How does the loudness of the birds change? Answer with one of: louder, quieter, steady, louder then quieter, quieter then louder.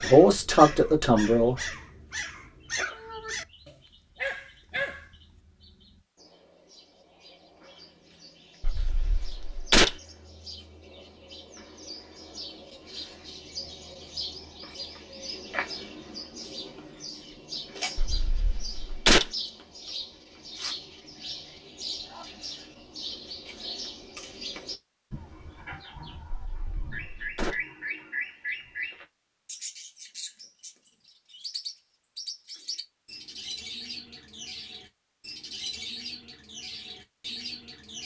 louder.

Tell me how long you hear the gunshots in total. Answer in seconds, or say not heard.
4 s.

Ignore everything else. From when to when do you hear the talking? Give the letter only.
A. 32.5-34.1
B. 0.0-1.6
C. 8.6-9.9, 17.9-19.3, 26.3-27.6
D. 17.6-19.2
B.